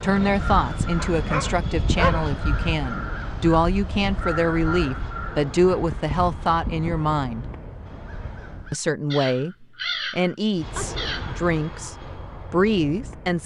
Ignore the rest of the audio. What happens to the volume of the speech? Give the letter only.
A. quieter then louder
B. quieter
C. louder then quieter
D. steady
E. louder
D.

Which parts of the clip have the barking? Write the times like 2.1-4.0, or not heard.
0.9-2.2.